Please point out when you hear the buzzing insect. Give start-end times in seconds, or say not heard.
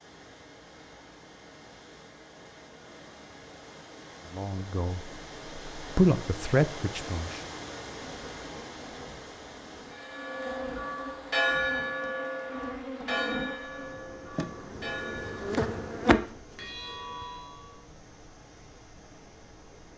8.0-17.4.